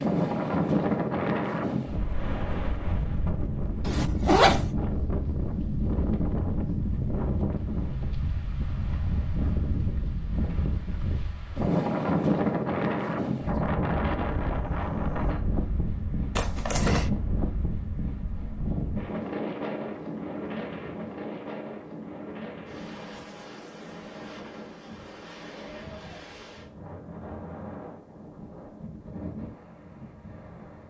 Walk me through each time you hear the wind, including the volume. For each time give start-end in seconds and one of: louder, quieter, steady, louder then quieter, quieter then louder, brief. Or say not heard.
0.0-30.8 quieter.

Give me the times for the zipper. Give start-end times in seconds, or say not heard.
3.9-4.8, 16.4-17.1.